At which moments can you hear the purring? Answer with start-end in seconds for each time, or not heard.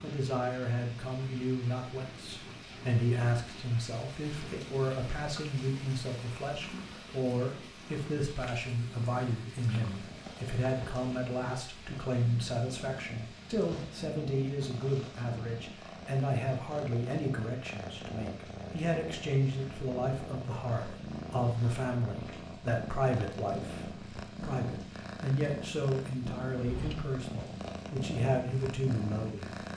0.0-29.7.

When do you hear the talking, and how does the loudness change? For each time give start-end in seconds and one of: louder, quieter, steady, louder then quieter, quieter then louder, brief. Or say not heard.
0.0-29.5 steady.